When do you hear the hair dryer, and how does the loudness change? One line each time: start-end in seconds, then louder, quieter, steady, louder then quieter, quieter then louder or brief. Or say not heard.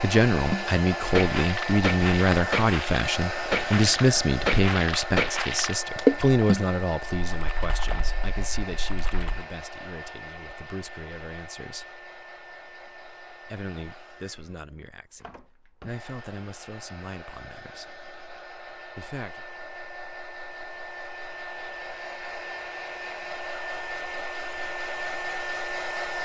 0.0-26.2 quieter then louder.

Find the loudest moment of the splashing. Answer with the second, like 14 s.
6 s.